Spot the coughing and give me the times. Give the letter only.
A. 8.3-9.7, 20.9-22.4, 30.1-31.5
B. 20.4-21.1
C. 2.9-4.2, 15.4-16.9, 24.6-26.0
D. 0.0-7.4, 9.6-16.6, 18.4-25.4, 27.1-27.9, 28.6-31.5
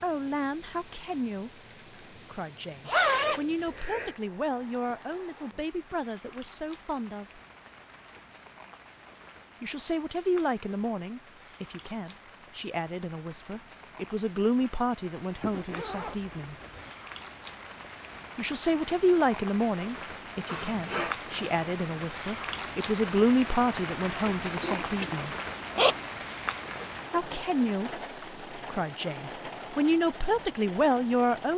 B.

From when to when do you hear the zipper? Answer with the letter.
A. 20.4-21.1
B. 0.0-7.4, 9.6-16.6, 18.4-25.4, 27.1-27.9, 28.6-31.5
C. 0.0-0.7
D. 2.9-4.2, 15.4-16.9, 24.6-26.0
D.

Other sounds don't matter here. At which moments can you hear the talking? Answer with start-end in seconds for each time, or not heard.
0.0-7.4, 9.6-16.6, 18.4-25.4, 27.1-27.9, 28.6-31.5.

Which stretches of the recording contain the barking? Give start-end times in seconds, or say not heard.
not heard.